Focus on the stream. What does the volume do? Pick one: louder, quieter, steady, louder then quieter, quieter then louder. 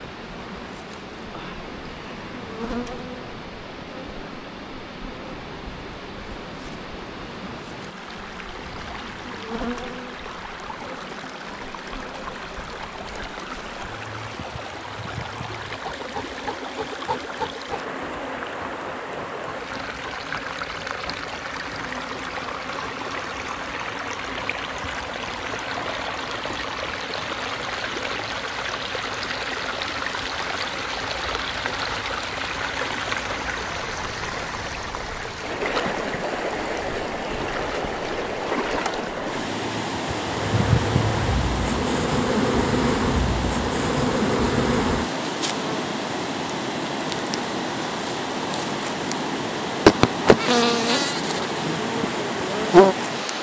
louder.